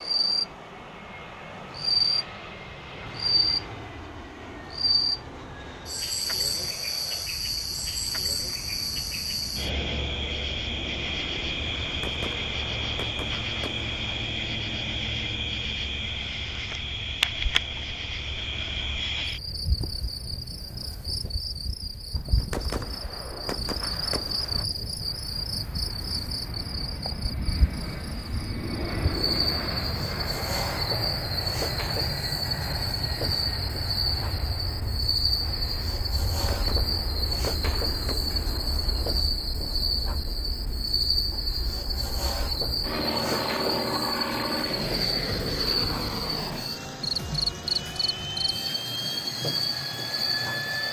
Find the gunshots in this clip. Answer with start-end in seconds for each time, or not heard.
11.8-14.3, 22.1-24.6, 36.3-39.1.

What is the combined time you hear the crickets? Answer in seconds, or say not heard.
51 s.